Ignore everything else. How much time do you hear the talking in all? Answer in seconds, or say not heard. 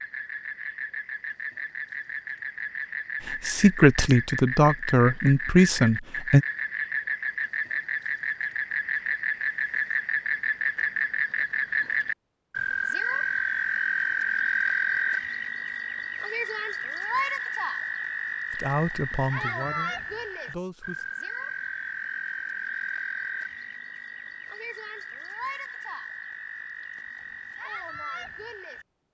6 s.